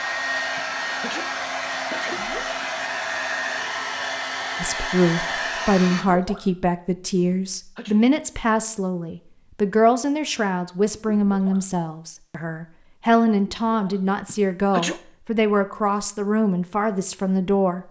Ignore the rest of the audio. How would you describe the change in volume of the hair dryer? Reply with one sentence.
The volume of the hair dryer stays about the same.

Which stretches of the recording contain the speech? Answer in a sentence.
You can hear the speech from 4.6 to 17.8 s.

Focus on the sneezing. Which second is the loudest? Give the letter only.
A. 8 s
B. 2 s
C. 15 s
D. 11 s
C.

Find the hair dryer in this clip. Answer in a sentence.
The hair dryer can be heard from 0.0 to 6.0 s.